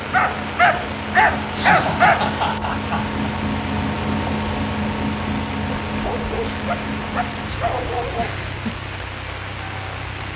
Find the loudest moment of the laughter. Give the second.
2 s.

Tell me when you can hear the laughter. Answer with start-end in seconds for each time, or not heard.
1.1-3.1, 8.2-8.8.